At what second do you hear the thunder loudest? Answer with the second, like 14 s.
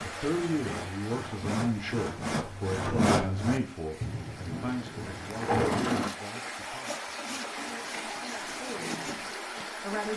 6 s.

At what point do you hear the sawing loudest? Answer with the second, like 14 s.
3 s.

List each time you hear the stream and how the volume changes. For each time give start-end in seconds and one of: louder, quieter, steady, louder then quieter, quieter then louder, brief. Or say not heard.
0.0-10.1 quieter then louder.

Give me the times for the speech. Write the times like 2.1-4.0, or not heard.
0.0-10.1.